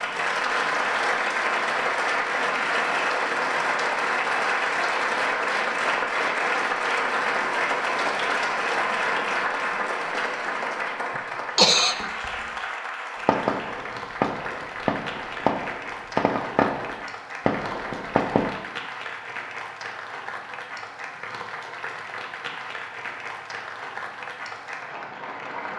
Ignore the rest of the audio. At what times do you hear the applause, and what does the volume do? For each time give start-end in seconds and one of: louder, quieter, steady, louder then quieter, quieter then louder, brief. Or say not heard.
0.0-25.7 quieter.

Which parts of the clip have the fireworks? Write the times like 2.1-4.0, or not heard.
13.2-18.5.